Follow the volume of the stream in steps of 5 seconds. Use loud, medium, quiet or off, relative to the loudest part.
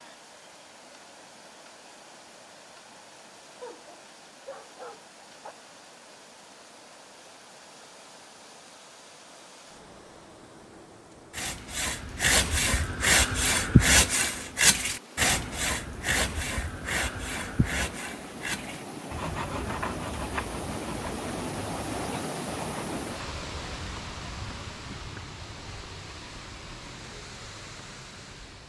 quiet, quiet, quiet, medium, loud, medium.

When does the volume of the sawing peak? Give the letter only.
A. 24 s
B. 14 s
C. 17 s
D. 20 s
B.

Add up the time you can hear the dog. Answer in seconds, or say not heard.
2 s.